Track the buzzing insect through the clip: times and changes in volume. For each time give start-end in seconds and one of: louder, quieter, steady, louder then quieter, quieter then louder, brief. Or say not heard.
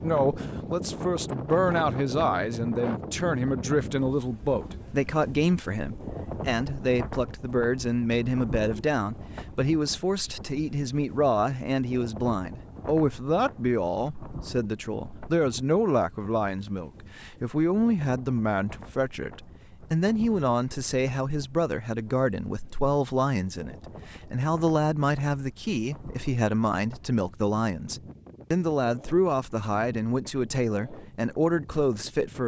not heard.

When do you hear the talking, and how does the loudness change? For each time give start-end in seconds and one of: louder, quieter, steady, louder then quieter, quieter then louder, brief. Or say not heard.
0.0-32.4 steady.